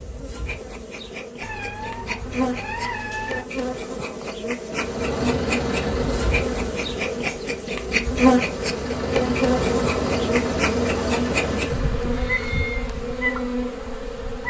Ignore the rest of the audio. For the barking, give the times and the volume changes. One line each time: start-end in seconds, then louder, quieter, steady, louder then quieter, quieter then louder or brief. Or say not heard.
not heard.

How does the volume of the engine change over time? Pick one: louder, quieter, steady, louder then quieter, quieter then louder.
quieter then louder.